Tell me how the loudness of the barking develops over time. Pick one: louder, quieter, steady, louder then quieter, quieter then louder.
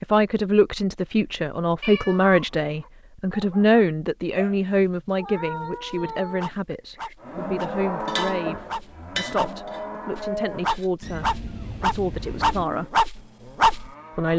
louder.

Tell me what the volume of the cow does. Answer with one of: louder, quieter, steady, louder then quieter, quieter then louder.
quieter.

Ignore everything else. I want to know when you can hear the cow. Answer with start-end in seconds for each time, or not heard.
7.2-14.3.